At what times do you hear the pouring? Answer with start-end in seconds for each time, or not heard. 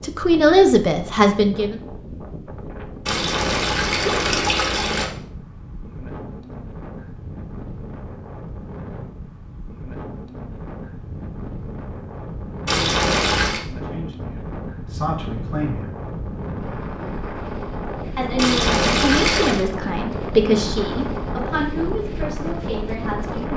3.0-5.0, 12.7-13.7, 18.4-19.6.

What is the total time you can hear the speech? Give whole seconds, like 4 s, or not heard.
9 s.